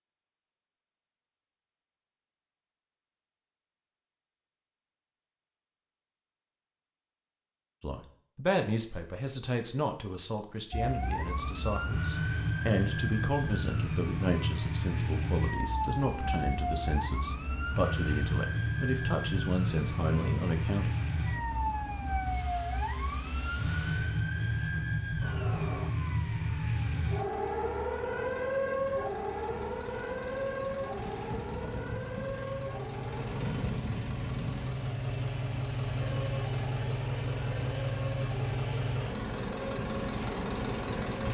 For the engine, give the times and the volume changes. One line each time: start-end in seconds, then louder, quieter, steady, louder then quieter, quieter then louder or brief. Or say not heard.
10.8-41.2 louder.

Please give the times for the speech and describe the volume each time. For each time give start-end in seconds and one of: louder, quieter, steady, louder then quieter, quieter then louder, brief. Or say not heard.
7.8-20.9 steady.